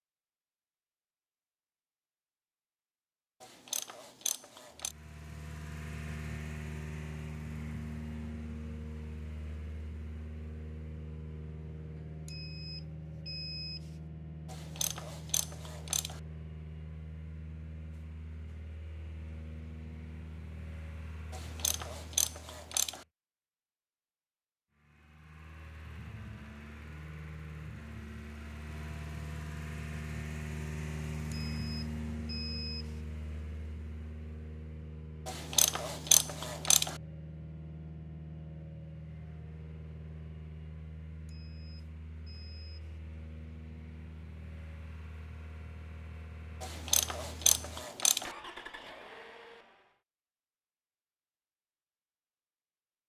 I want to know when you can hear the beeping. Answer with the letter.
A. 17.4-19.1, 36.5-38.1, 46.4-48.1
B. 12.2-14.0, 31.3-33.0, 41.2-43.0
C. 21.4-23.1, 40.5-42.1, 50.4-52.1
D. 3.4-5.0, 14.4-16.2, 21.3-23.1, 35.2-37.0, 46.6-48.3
B.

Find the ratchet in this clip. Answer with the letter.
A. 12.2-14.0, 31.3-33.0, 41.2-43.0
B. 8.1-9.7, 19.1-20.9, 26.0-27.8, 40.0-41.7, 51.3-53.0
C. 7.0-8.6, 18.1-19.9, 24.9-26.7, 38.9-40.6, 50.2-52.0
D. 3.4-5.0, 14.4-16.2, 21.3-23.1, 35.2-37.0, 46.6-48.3
D.